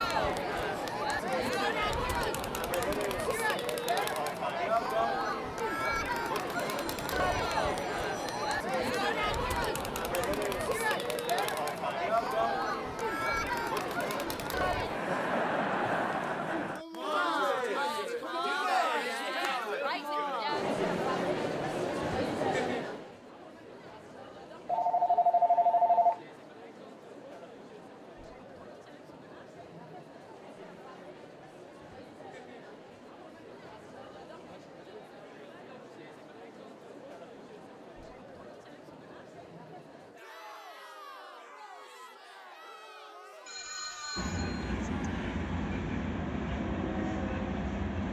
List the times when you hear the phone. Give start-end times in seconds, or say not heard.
6.5-8.6, 24.6-26.2, 43.5-44.8.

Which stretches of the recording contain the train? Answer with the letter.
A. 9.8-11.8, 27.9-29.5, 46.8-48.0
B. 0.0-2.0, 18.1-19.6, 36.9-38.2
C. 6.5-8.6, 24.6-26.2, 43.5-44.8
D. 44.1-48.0
D.